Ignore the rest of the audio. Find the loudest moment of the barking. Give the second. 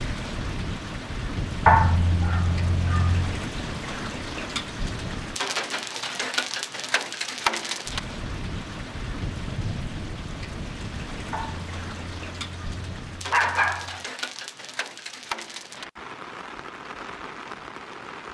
2 s.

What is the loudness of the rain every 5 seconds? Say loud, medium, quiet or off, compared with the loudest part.
loud, loud, medium, medium.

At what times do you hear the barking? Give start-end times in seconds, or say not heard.
1.6-3.4, 11.3-14.0.